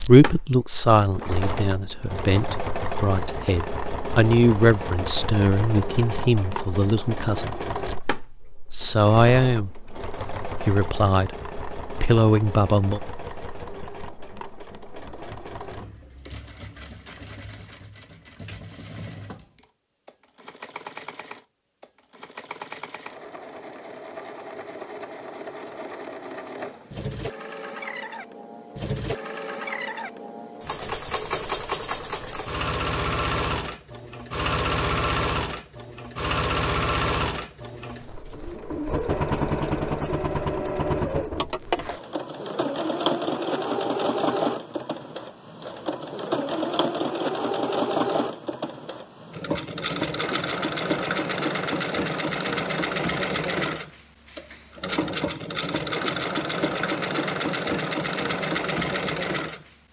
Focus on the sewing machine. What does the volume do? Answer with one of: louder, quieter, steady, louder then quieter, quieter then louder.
quieter then louder.